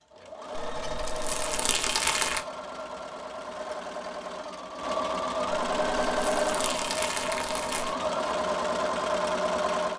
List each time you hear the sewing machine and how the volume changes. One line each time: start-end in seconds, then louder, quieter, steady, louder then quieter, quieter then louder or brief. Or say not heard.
0.0-9.9 louder.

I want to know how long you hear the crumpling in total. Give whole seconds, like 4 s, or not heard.
4 s.